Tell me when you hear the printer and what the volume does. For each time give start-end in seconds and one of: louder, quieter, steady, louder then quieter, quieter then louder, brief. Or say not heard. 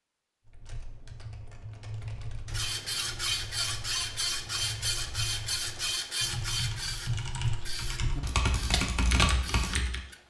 2.5-10.2 quieter.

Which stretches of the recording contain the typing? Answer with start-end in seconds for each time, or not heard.
0.5-10.0.